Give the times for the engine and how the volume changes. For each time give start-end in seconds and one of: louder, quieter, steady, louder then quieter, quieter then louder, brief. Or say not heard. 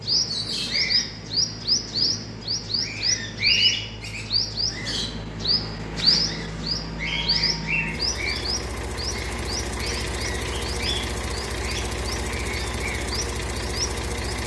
0.0-14.4 louder.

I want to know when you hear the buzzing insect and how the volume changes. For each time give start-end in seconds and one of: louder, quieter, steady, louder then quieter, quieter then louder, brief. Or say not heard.
not heard.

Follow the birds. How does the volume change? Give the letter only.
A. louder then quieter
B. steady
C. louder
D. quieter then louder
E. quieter
E.